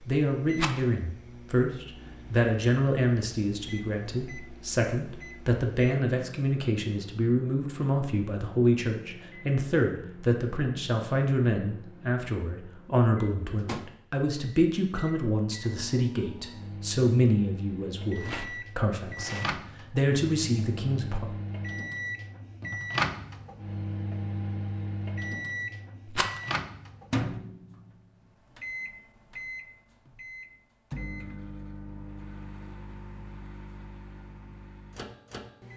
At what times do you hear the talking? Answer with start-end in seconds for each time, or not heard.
0.0-21.2.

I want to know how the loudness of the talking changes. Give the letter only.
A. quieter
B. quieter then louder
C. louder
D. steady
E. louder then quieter
D.